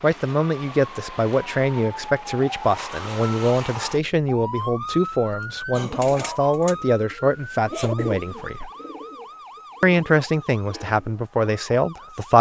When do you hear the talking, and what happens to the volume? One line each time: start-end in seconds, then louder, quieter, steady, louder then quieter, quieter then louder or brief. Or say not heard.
0.0-8.7 steady
9.8-12.3 brief.